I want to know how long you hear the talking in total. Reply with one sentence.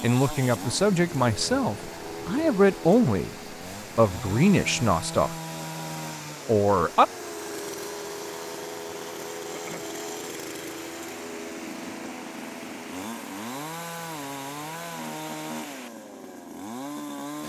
The talking can be heard for 5 seconds in total.